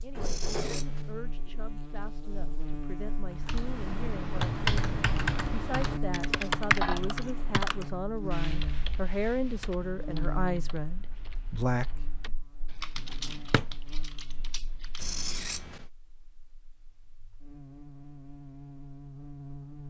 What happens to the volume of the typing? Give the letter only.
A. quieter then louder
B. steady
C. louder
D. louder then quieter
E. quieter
A.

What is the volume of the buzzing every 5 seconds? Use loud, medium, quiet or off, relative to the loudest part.
loud, loud, medium, medium.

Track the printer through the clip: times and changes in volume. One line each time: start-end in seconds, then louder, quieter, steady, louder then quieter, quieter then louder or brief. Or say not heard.
not heard.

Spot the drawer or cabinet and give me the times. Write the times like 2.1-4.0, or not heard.
0.1-0.8, 13.2-13.7.